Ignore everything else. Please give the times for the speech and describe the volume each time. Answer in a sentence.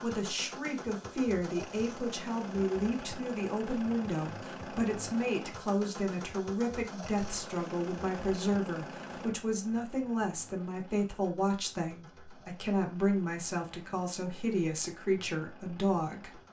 The speech can be heard from 0.0 to 16.4 s, at a steady volume.